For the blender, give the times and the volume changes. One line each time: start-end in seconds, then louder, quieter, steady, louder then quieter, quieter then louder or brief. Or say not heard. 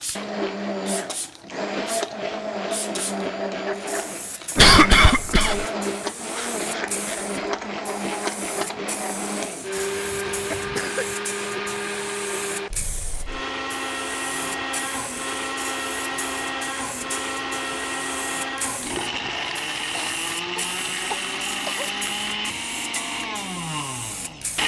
0.0-24.6 steady.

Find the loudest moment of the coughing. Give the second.
5 s.